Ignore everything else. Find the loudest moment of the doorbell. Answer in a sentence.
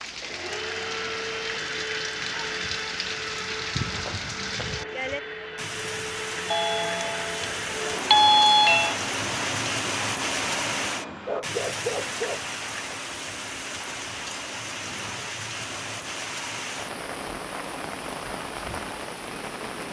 The volume of the doorbell peaks at 8 seconds.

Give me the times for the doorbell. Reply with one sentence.
The doorbell can be heard from 6.5 to 8.9 s.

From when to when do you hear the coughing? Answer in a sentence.
You can't hear the coughing here.